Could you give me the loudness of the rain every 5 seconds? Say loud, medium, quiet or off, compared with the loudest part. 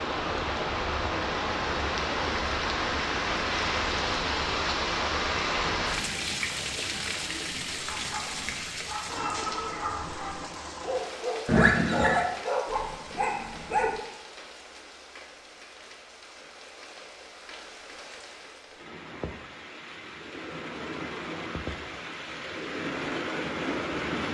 loud, loud, quiet, quiet, medium.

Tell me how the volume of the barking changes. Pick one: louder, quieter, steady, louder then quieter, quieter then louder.
louder.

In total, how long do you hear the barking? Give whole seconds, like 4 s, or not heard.
6 s.